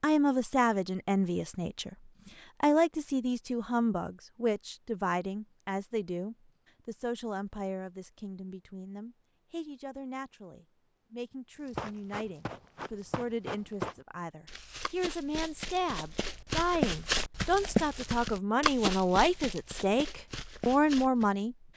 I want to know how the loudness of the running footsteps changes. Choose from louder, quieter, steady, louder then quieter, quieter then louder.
louder then quieter.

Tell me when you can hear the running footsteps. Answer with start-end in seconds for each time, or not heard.
11.7-21.3.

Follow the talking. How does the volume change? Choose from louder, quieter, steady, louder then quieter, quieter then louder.
quieter then louder.